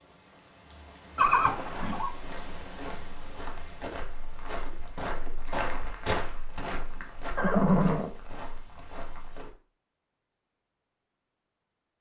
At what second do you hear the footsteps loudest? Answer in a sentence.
The volume of the footsteps peaks at 6 seconds.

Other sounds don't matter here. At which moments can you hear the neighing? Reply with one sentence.
The neighing can be heard from 1.1 to 2.1 s and from 7.3 to 8.1 s.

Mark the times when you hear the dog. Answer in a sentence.
You can't hear the dog here.